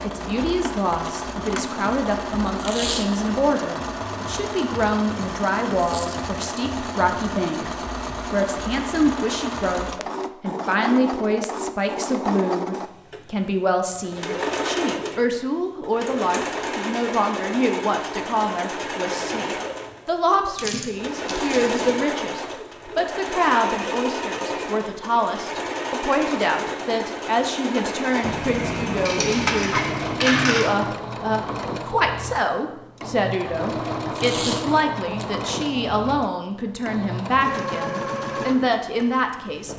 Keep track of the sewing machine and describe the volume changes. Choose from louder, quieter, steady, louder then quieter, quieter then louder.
steady.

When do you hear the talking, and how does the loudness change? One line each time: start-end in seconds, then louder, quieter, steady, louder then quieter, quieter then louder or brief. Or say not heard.
0.0-39.7 steady.